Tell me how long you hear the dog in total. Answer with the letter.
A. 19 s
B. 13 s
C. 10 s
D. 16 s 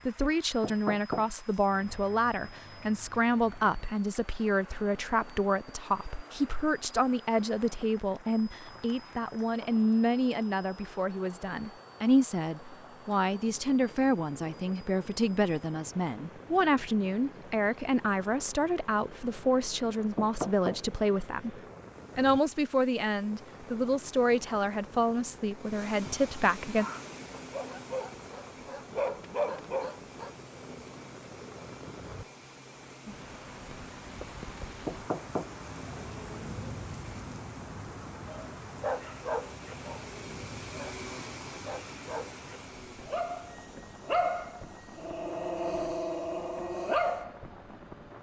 B.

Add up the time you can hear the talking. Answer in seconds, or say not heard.
27 s.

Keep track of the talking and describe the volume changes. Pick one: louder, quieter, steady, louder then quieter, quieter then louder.
steady.